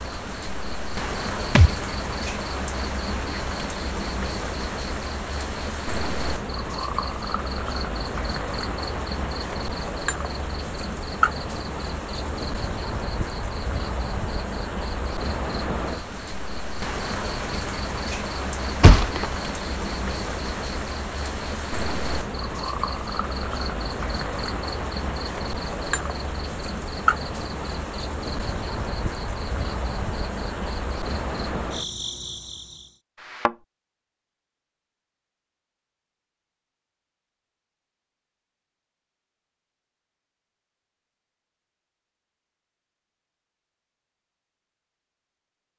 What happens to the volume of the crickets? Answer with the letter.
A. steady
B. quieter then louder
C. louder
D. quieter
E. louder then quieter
A.